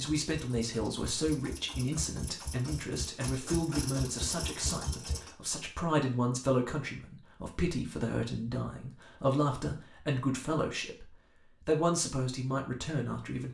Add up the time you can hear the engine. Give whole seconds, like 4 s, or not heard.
5 s.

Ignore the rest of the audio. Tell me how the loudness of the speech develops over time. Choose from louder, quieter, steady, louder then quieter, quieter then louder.
steady.